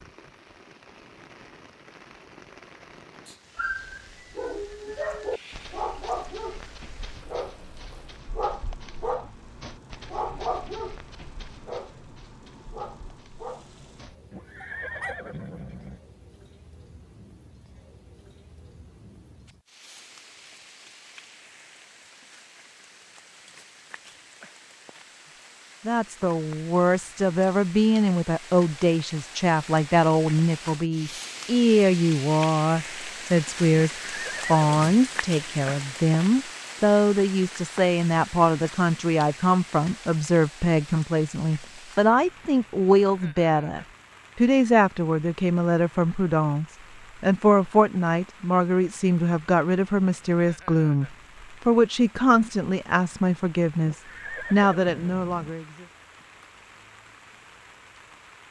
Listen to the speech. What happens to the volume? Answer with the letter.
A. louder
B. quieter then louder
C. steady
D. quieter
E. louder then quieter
C.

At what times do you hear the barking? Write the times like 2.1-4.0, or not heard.
3.5-15.2.